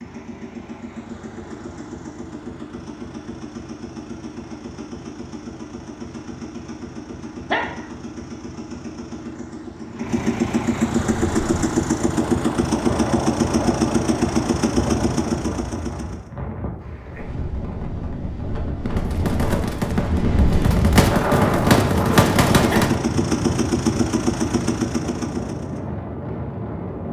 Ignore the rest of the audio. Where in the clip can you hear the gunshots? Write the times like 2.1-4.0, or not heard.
18.9-22.9.